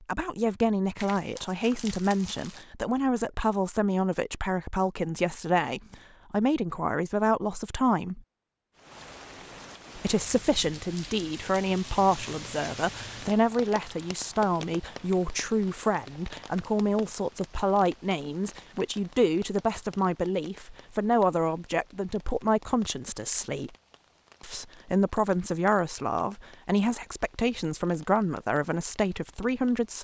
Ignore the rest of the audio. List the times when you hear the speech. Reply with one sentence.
The speech can be heard from 0.1 to 8.2 s, from 9.9 to 23.7 s and from 24.4 to 29.9 s.